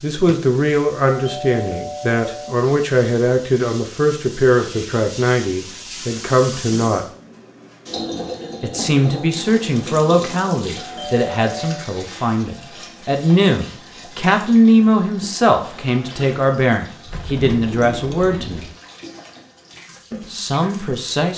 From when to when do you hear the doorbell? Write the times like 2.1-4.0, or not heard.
1.1-2.5, 10.8-11.8.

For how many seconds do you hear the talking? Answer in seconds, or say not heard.
18 s.